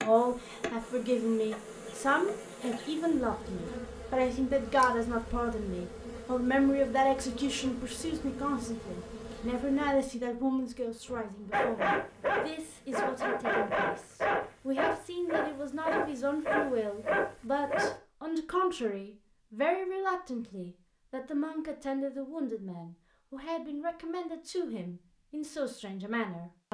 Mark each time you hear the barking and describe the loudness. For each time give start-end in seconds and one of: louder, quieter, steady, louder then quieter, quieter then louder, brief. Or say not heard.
11.5-17.9 steady.